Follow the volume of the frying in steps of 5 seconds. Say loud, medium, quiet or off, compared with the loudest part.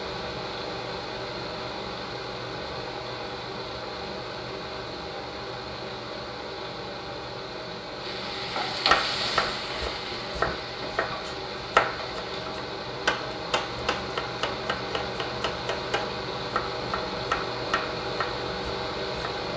off, loud, medium, off.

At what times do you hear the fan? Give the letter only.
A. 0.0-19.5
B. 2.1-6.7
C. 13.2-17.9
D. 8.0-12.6
A.